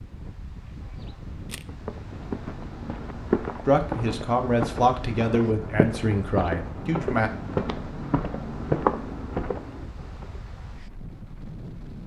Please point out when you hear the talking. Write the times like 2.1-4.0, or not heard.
3.6-7.3.